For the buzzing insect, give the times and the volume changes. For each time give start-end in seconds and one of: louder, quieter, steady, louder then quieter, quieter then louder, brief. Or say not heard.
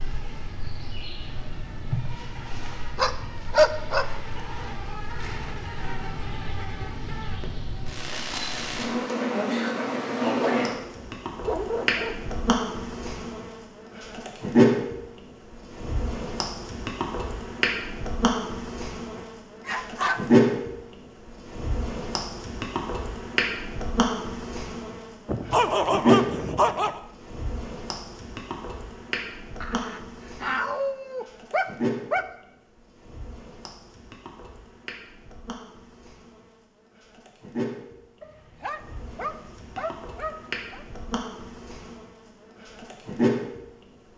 0.0-44.1 louder then quieter.